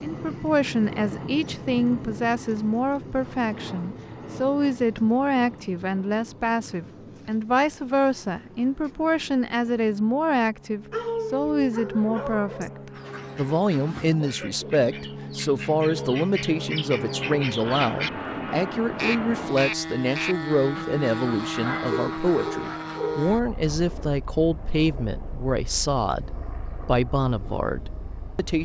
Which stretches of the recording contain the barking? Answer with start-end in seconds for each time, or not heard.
10.9-12.7, 21.6-23.2.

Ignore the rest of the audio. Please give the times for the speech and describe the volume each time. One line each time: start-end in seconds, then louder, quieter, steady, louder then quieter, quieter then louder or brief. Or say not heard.
0.0-28.5 steady.